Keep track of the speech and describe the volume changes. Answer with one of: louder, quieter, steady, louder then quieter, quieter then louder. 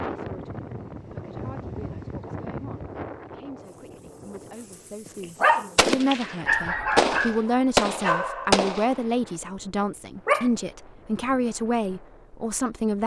louder.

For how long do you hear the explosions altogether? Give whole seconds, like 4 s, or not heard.
3 s.